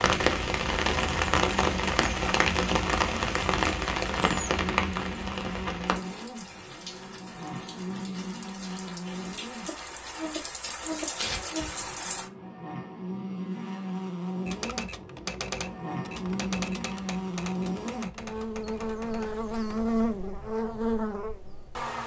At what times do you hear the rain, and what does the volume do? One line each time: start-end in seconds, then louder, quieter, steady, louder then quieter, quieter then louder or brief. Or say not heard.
0.0-12.3 quieter then louder.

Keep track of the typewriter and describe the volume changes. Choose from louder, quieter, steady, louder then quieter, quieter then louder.
quieter.